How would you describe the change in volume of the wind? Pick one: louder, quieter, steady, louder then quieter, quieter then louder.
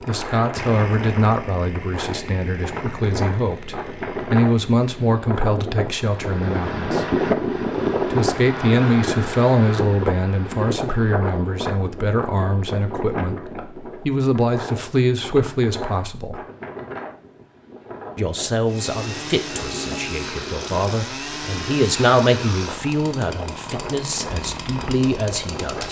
louder then quieter.